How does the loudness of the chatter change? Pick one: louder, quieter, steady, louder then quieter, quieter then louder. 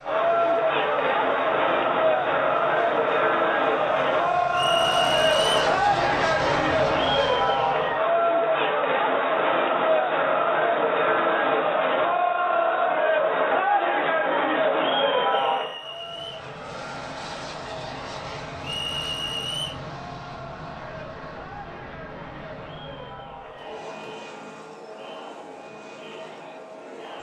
quieter.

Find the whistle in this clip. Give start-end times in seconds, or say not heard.
4.5-5.5, 15.2-16.3, 18.6-19.8.